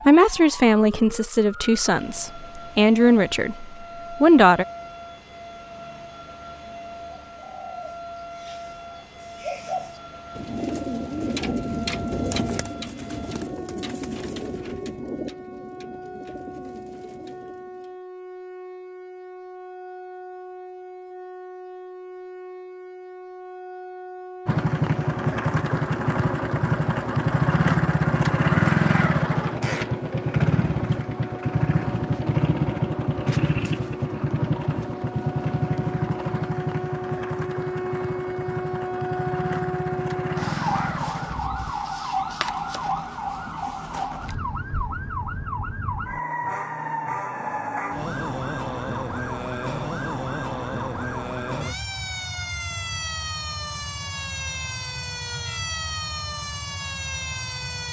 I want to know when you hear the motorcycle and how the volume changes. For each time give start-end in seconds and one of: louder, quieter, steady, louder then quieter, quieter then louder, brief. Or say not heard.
24.4-41.8 quieter.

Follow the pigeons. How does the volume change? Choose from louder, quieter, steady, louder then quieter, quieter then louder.
louder then quieter.